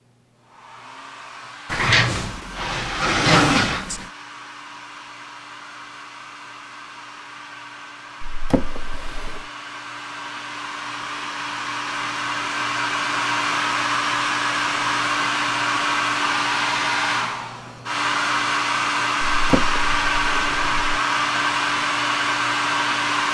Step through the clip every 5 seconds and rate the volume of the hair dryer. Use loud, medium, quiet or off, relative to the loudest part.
quiet, quiet, loud, loud, loud.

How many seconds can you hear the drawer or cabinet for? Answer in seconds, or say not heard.
5 s.